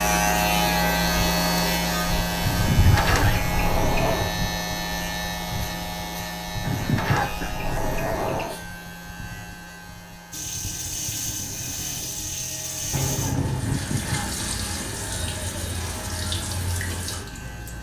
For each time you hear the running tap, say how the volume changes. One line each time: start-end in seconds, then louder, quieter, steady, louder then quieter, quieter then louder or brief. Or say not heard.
10.3-17.7 steady.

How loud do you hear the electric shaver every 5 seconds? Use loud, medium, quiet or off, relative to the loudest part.
loud, medium, quiet, quiet.